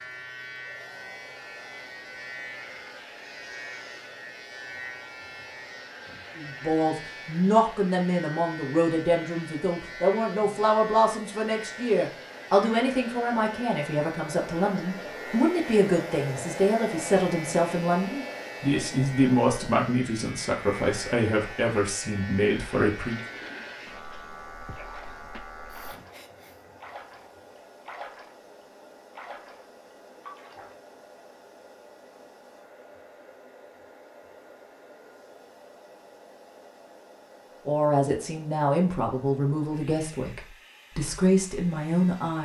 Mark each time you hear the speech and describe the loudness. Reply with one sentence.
The speech can be heard from 6.3 to 23.2 s, at a steady volume; and from 37.6 to 42.4 s, getting quieter then louder.